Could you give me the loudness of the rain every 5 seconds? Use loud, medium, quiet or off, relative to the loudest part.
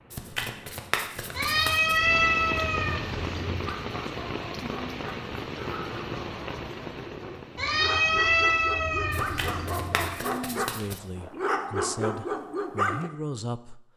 loud, loud, off.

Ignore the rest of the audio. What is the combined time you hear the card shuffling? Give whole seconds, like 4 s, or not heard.
4 s.